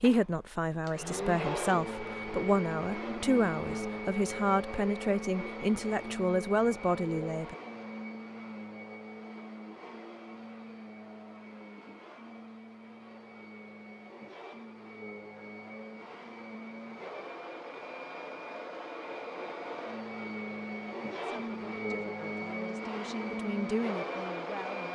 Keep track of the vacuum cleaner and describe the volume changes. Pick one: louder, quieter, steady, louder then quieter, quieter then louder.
quieter then louder.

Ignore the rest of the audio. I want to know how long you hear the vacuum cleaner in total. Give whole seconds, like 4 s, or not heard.
25 s.